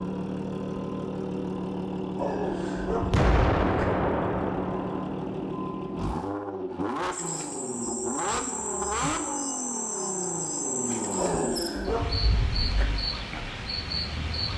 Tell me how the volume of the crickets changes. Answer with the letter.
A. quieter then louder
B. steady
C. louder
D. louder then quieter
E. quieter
B.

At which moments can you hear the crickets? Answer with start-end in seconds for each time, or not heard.
7.1-14.5.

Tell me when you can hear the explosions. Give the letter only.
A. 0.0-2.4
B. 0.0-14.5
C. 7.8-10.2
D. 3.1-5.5
D.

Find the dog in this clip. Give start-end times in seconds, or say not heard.
2.1-3.9, 11.2-12.9.